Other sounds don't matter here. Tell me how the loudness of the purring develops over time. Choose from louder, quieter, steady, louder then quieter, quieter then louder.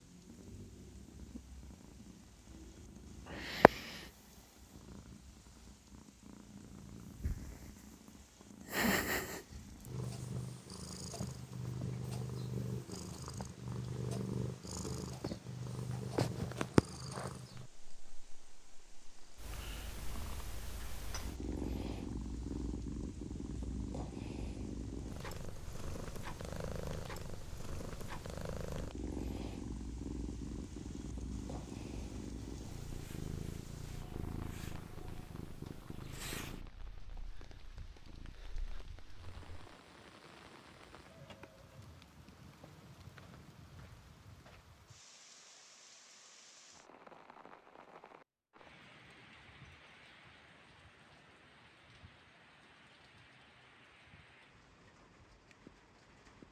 louder then quieter.